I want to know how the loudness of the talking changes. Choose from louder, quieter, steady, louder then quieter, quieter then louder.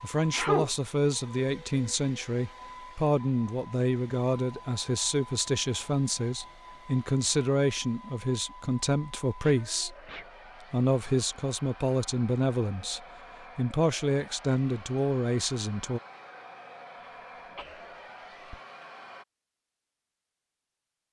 steady.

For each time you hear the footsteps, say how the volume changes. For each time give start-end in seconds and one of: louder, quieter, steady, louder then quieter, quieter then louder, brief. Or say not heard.
not heard.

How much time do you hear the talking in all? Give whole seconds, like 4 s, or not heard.
15 s.